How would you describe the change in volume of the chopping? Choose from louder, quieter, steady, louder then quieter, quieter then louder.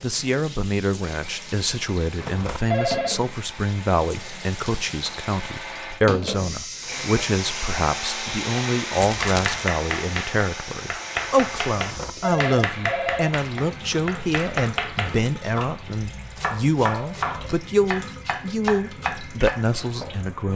steady.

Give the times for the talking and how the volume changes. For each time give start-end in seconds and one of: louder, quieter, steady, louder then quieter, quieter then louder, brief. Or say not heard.
0.0-20.5 steady.